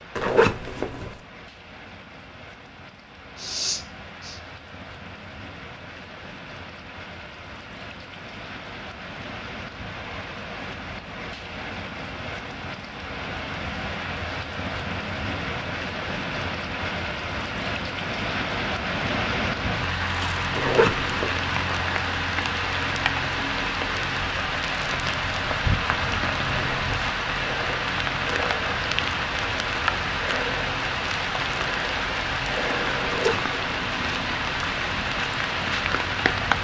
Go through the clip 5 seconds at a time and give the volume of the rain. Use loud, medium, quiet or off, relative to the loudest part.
quiet, quiet, medium, loud, loud, loud, loud, loud.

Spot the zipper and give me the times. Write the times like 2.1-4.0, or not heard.
0.1-1.1, 20.6-21.4, 33.0-33.6.